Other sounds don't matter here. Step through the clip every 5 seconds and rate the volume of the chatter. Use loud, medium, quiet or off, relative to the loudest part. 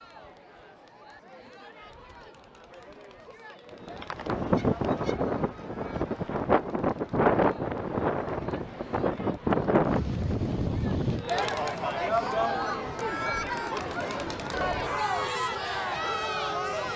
quiet, quiet, loud, loud.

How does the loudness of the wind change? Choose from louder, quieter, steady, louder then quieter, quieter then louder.
quieter.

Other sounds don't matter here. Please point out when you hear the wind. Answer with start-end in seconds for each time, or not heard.
3.7-16.9.